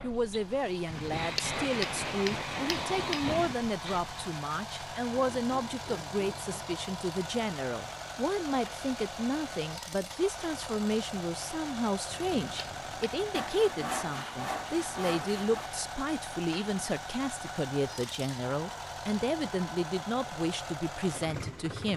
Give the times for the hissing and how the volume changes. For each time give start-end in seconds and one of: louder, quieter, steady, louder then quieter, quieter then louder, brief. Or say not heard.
0.0-4.2 louder.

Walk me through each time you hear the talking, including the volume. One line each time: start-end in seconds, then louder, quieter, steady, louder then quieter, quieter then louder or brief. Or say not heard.
0.0-21.9 steady.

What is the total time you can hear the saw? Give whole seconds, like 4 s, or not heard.
4 s.